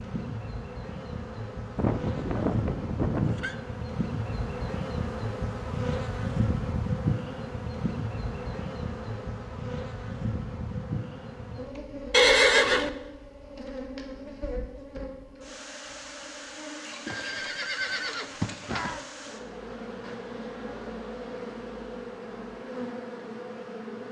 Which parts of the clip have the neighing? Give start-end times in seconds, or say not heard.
1.8-3.5, 12.1-12.9, 17.1-19.0.